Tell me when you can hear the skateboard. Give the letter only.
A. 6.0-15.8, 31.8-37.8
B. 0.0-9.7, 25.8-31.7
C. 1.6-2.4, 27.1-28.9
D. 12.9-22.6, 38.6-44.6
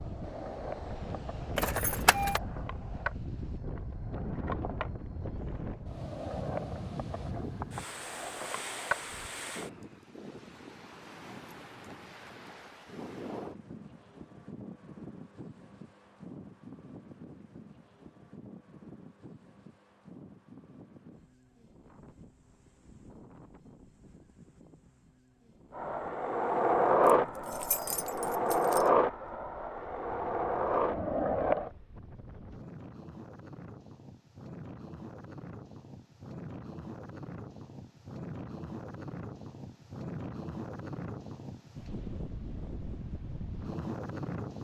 B.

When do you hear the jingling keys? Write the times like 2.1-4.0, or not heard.
1.6-2.4, 27.1-28.9.